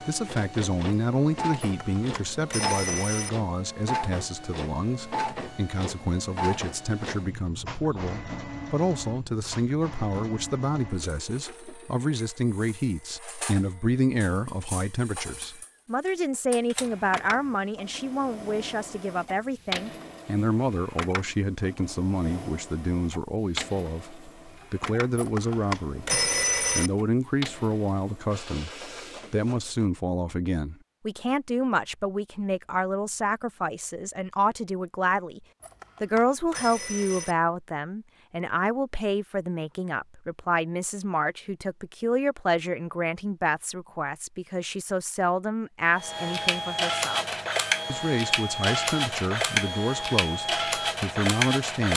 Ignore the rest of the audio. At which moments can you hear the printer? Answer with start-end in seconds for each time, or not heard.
0.0-29.9, 46.0-51.9.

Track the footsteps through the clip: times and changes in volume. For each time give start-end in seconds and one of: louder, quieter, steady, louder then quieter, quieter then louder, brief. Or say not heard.
not heard.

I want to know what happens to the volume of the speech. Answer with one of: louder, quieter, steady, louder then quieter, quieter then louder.
steady.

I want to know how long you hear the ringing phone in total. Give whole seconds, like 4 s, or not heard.
5 s.